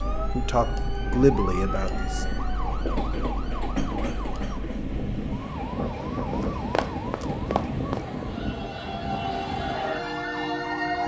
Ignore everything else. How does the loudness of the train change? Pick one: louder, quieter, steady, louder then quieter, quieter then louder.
steady.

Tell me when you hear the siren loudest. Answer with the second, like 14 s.
11 s.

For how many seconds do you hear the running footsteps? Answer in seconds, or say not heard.
2 s.